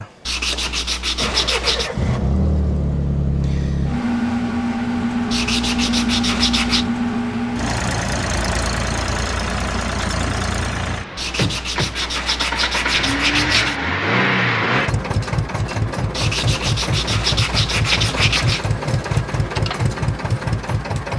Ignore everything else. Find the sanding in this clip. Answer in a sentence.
You can hear the sanding from 0.2 to 1.9 s, from 5.3 to 6.8 s, from 11.2 to 13.8 s and from 16.1 to 18.6 s.